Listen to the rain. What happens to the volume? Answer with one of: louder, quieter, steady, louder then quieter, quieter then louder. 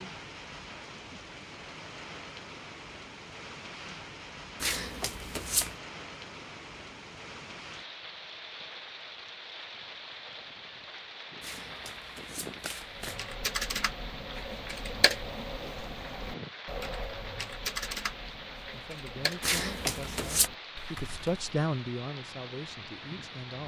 steady.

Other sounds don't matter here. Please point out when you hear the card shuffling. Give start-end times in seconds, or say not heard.
4.6-5.8, 11.4-13.2, 19.4-20.5.